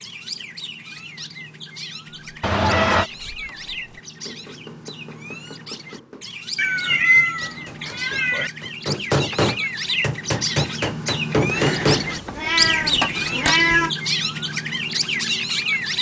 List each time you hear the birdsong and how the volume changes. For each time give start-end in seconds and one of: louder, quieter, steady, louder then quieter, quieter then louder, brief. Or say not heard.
0.0-15.9 louder.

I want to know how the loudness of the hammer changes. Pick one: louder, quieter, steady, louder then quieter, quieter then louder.
louder.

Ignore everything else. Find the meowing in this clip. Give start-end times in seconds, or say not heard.
2.4-3.1, 6.5-8.5, 11.4-13.9.